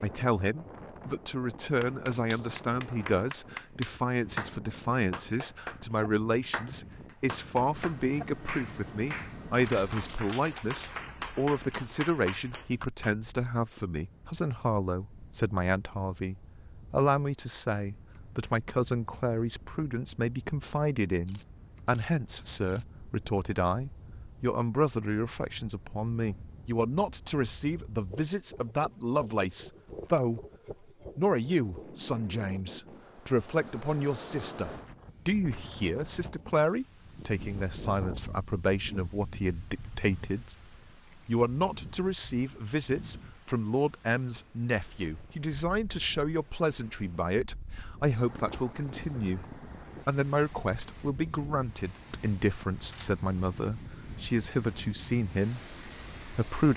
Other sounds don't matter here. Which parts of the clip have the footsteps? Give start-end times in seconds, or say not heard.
not heard.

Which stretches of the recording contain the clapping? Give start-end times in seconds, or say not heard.
1.8-13.1.